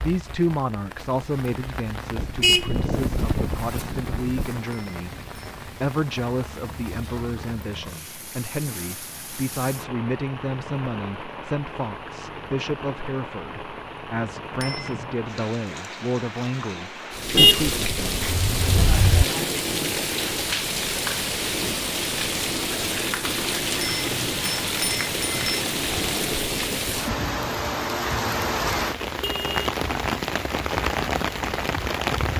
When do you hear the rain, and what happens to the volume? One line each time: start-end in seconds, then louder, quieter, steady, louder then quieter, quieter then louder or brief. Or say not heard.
0.0-32.3 louder.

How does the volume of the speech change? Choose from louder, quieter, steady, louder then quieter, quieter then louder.
steady.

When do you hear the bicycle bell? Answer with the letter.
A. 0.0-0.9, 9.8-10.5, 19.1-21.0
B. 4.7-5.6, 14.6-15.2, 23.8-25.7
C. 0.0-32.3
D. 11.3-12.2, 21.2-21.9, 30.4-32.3
B.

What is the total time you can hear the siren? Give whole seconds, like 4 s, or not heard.
not heard.